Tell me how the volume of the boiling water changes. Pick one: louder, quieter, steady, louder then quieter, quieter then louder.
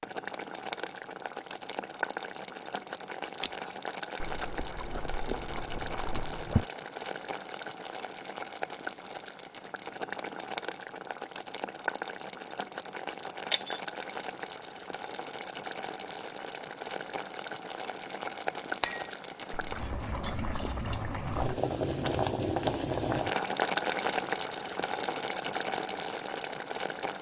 louder.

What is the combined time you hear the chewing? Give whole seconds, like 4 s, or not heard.
4 s.